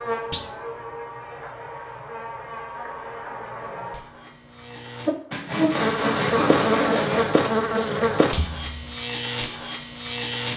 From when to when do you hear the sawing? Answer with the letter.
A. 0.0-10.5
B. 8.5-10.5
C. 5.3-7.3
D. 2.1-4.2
C.